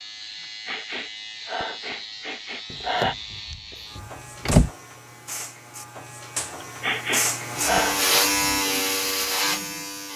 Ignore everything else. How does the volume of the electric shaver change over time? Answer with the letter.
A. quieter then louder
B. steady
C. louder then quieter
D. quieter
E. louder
E.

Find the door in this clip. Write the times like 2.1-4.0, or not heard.
2.7-4.7.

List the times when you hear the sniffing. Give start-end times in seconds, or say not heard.
0.7-3.1, 6.6-8.1.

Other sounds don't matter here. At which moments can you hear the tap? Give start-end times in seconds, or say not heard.
not heard.